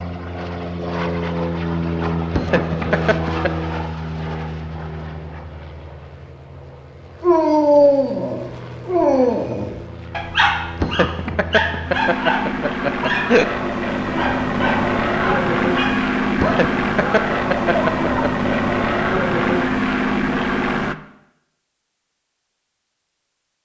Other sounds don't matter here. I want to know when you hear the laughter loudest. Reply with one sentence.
The volume of the laughter peaks at 13 seconds.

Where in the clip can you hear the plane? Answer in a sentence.
The plane can be heard from 0.0 to 20.9 s.